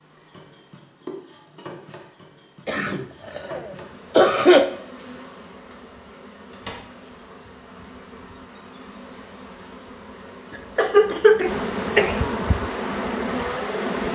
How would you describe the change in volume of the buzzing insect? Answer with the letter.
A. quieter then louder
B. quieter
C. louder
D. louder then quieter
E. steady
C.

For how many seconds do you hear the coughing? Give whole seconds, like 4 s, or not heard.
4 s.